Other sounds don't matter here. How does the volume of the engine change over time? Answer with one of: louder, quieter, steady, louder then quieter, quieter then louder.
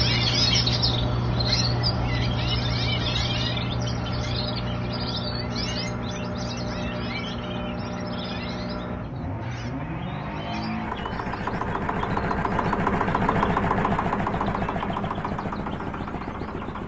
louder.